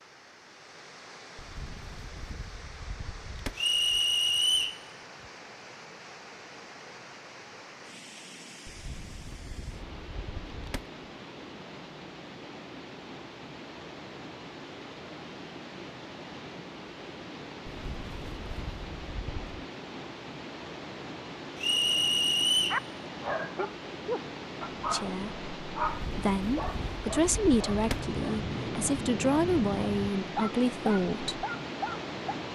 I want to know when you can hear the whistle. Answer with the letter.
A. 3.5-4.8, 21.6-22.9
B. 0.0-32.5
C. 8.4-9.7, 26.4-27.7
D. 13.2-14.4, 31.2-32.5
A.